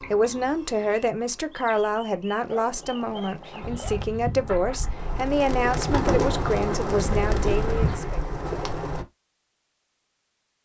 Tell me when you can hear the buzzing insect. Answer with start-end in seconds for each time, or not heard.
3.5-8.0.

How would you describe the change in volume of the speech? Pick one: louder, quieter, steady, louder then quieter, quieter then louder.
steady.